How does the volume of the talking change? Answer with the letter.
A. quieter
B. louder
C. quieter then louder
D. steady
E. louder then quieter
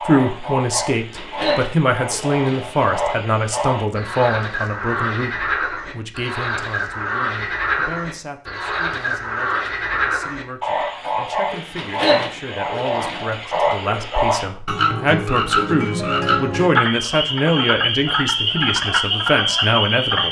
C.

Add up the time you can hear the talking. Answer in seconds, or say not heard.
20 s.